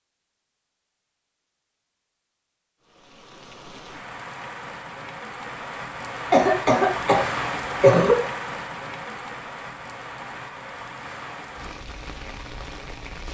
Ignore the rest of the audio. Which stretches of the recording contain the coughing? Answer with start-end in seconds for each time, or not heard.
6.3-8.2.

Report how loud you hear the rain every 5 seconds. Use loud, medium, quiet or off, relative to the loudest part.
medium, loud, medium.